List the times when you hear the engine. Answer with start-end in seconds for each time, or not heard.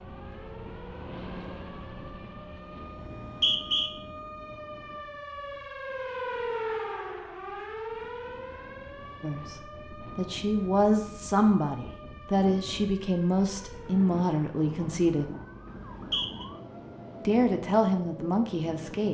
0.0-2.9.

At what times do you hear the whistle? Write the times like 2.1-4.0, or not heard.
3.0-3.9, 15.9-16.4.